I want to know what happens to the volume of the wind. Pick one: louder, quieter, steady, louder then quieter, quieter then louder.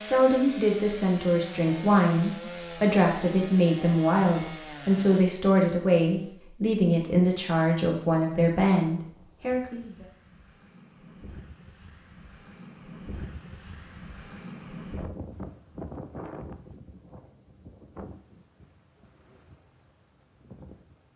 louder then quieter.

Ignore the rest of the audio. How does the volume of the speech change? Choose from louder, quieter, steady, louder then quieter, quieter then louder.
steady.